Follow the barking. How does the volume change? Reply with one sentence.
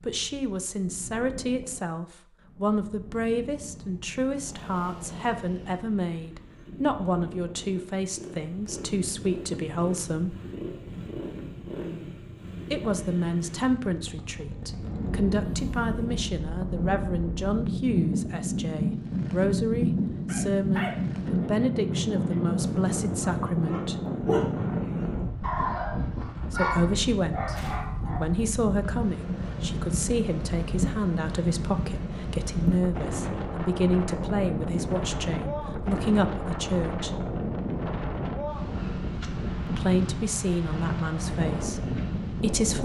The volume of the barking goes down, then up.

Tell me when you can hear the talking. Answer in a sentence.
You can hear the talking from 0.0 to 10.3 s, from 12.7 to 24.1 s, from 26.4 to 37.2 s and from 39.6 to 42.8 s.